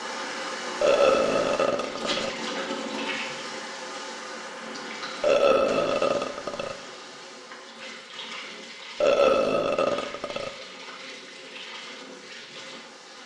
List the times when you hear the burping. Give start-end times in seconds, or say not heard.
0.8-2.3, 5.2-6.8, 9.0-10.5.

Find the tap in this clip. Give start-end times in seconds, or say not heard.
0.0-13.2.